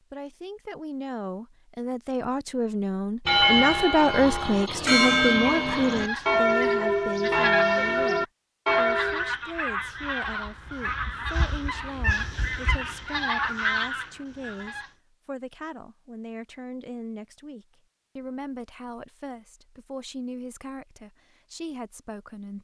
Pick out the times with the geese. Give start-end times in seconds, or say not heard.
5.8-14.9.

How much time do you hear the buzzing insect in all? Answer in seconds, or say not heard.
not heard.